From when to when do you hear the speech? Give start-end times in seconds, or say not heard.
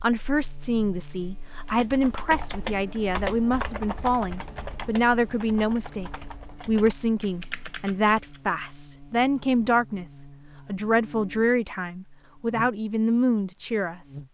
0.0-10.1, 10.7-14.2.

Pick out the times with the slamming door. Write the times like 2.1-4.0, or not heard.
not heard.